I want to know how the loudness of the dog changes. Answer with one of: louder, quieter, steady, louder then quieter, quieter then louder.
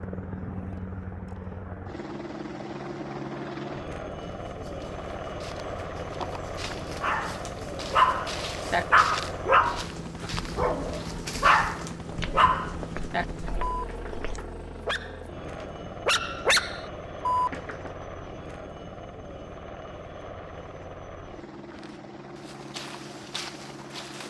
quieter then louder.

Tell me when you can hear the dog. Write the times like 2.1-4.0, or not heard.
7.0-17.9.